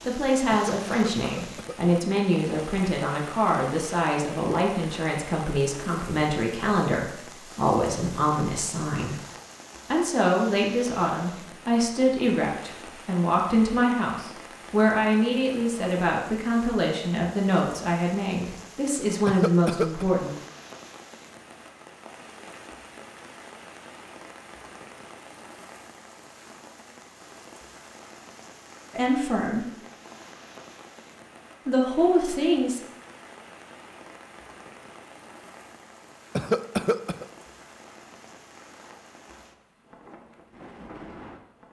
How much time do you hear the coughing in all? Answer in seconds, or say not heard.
3 s.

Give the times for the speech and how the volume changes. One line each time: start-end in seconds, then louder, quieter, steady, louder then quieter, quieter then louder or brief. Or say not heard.
0.0-9.2 steady
9.9-20.3 steady
28.9-29.6 brief
31.6-32.8 brief.